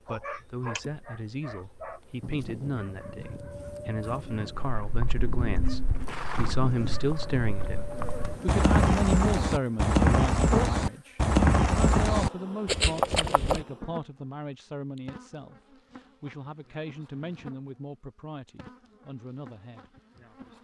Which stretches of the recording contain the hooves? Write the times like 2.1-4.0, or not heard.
4.7-13.7.